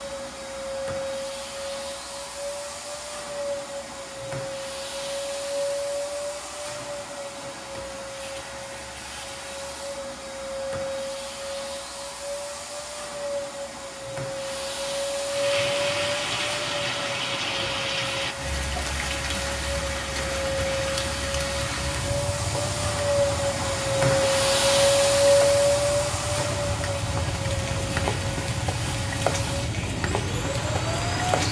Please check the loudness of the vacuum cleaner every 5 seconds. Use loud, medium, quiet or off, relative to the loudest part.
medium, medium, medium, medium, loud, loud, medium.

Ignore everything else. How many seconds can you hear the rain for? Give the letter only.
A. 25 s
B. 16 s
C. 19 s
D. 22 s
B.